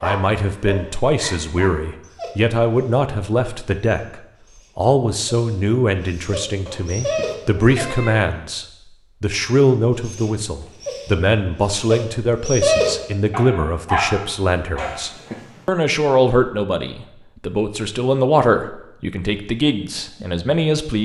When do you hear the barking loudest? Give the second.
13 s.